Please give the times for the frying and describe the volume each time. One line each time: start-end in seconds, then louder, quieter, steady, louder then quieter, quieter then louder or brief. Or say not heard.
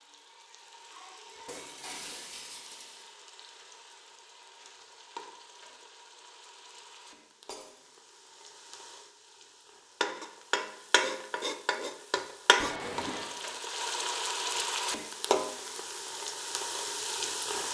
0.0-17.6 louder.